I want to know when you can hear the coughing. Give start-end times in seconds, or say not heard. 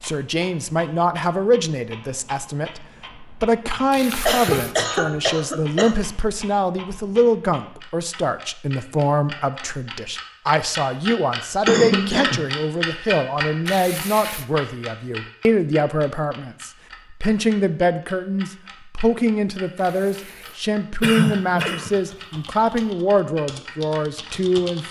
3.7-6.0, 11.7-12.5, 21.0-21.9.